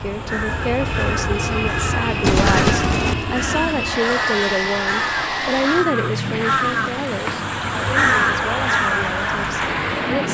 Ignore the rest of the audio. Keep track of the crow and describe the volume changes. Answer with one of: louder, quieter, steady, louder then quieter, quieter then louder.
louder.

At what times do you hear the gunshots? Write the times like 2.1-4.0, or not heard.
2.2-3.2.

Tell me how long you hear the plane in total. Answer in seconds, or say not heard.
10 s.